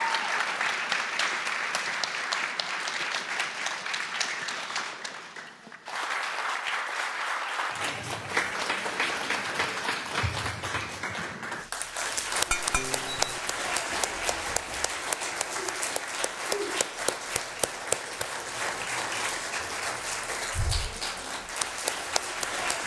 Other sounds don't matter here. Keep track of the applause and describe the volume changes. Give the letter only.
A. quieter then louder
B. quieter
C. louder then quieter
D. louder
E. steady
E.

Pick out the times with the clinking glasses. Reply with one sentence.
You can hear the clinking glasses from 12.4 to 13.4 s.